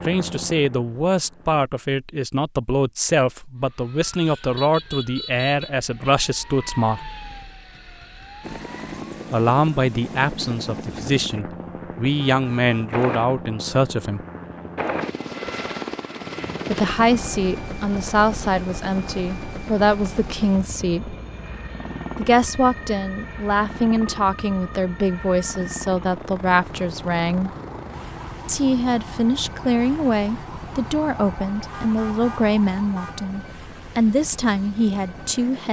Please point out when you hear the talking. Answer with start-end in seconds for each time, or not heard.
0.0-7.1, 9.3-14.2, 16.7-21.1, 22.1-27.5, 28.4-35.6.